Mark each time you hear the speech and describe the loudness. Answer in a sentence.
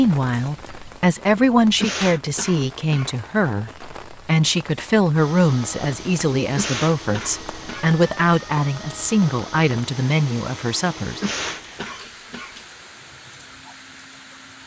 You can hear the speech from 0.0 to 11.2 s, at a steady volume.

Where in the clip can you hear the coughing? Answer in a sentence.
The coughing can be heard from 1.8 to 3.2 s, from 6.5 to 7.8 s and from 11.2 to 12.6 s.